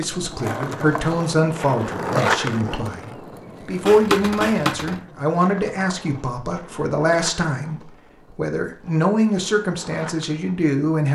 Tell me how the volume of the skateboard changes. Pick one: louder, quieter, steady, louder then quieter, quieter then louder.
quieter.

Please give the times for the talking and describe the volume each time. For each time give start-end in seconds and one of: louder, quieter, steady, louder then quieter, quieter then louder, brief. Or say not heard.
0.0-11.1 steady.